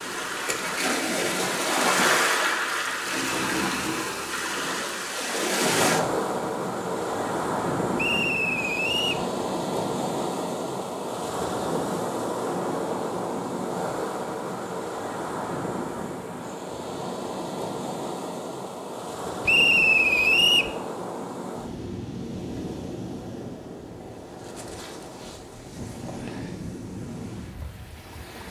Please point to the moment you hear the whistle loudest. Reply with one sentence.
The volume of the whistle peaks at 20 seconds.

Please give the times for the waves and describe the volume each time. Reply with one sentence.
The waves can be heard from 0.0 to 28.4 s, getting quieter.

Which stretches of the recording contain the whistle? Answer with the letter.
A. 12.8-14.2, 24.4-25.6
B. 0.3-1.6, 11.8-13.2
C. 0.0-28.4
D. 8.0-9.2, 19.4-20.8
D.